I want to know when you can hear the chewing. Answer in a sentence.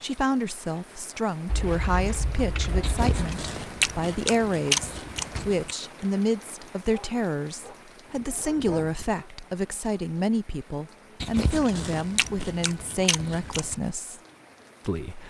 The chewing can be heard from 2.8 to 5.8 s and from 11.2 to 13.8 s.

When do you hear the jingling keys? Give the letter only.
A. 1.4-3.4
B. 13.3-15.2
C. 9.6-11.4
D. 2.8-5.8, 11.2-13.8
A.